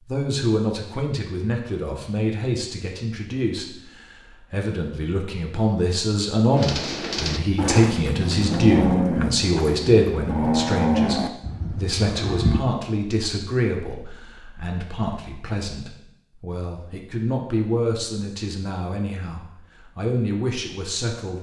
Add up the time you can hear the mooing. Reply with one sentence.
The mooing can be heard for 6 seconds in total.